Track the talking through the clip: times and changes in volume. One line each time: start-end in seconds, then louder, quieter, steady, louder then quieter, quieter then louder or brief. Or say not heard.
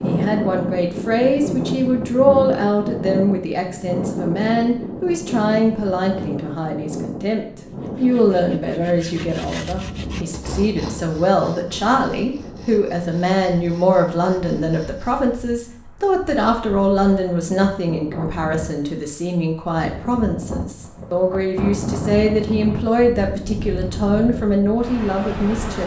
0.0-25.8 steady.